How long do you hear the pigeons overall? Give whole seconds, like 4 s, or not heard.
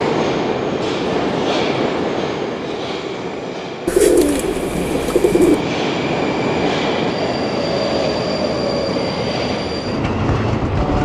2 s.